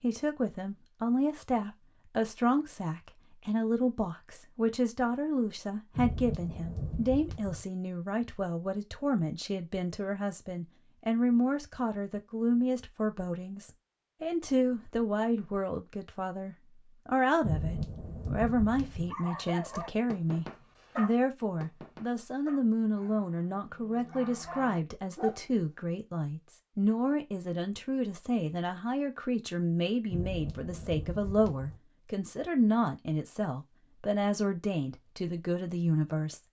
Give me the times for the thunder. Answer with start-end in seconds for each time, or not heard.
5.9-7.7, 17.4-19.1, 30.1-31.8.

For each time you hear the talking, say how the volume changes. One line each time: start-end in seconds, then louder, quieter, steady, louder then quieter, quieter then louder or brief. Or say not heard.
0.0-36.4 steady.